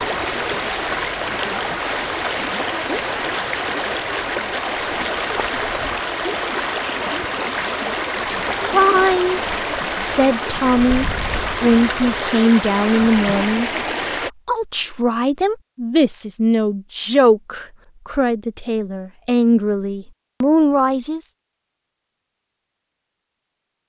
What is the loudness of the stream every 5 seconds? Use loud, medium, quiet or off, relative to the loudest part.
loud, loud, loud, off, off.